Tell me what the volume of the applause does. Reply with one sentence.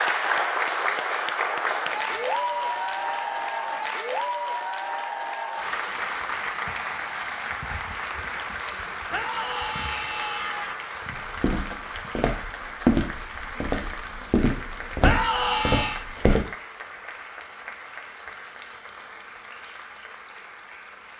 The loudness of the applause goes down.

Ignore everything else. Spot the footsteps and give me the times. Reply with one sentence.
You can hear the footsteps from 11.1 to 16.4 s.